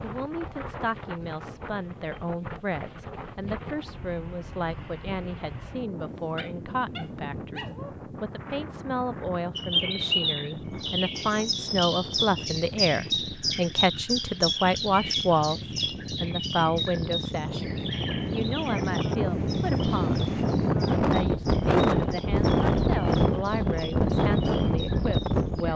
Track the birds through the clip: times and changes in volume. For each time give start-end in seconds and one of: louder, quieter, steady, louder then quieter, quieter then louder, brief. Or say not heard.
9.6-25.7 quieter.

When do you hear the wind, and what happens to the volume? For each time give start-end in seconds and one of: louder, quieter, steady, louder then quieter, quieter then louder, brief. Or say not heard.
0.0-25.7 louder.